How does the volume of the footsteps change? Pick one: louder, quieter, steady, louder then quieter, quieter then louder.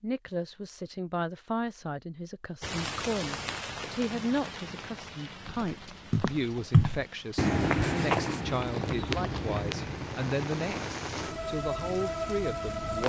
quieter.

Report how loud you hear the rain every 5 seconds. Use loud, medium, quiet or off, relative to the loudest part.
loud, medium, loud.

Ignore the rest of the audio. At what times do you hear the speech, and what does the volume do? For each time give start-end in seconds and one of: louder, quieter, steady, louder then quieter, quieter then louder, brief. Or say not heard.
0.0-13.0 steady.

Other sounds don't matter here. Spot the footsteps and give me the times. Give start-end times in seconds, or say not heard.
5.7-12.2.